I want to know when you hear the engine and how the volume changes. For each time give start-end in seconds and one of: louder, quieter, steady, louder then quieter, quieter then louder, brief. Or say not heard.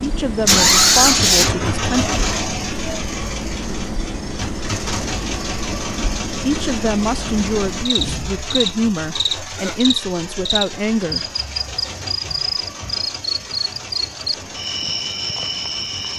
0.0-16.1 quieter.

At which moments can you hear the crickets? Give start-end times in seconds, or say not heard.
0.0-16.1.